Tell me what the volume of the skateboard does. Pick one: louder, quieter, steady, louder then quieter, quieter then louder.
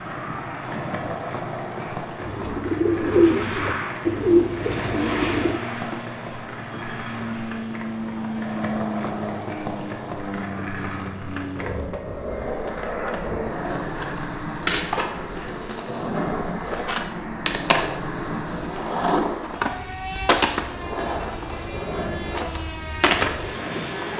louder.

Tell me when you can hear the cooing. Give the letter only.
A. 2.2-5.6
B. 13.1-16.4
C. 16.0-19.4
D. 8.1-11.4
A.